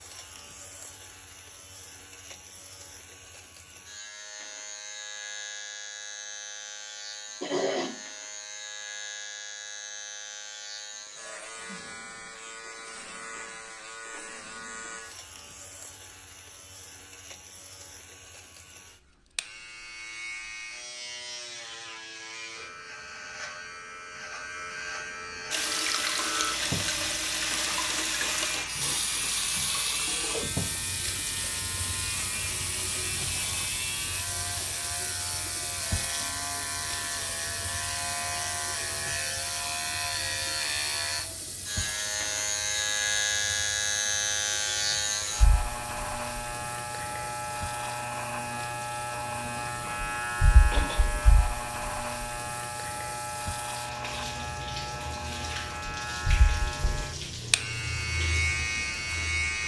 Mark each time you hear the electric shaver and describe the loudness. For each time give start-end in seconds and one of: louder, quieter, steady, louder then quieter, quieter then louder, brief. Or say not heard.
0.0-59.6 louder.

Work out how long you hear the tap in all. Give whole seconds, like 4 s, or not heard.
34 s.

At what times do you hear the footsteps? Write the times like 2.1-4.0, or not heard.
not heard.